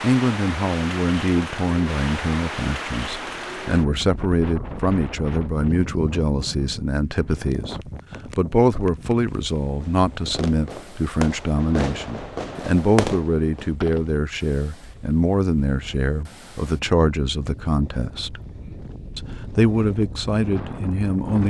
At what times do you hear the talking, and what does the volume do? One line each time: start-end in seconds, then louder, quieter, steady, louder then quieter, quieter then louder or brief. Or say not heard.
0.0-18.4 steady
19.1-21.4 brief.